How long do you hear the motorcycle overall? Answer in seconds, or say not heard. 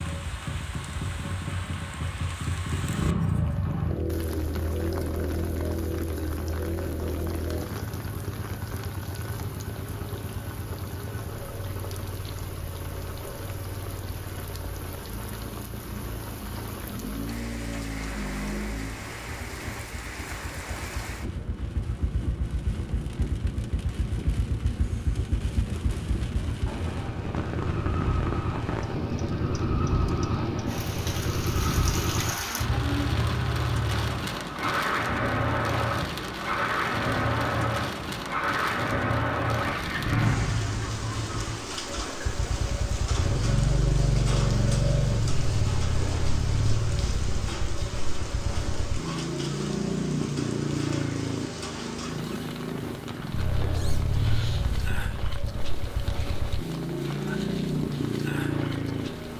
59 s.